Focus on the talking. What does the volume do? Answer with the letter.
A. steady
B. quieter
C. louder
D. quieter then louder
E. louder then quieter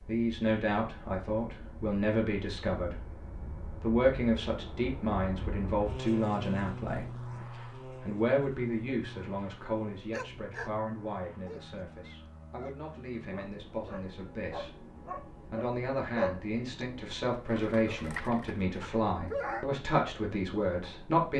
D.